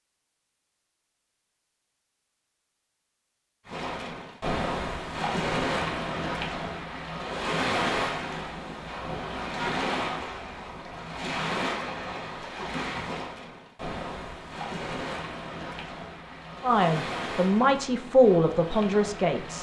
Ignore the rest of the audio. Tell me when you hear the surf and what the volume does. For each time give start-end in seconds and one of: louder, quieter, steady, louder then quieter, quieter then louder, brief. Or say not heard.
3.6-19.5 quieter.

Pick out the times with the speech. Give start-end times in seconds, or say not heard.
16.6-19.5.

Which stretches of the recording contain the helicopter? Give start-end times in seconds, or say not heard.
not heard.